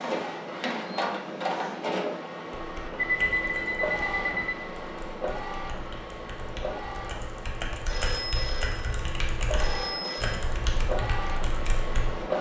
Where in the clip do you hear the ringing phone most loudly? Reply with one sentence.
The volume of the ringing phone peaks at 3 seconds.